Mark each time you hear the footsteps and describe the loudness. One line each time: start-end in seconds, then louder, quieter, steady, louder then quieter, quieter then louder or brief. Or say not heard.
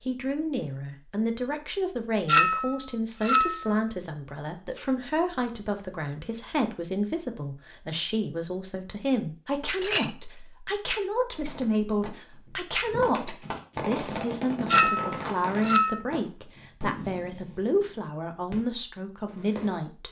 not heard.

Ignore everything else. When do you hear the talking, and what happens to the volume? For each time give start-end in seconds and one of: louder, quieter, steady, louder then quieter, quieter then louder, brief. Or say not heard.
0.1-20.0 steady.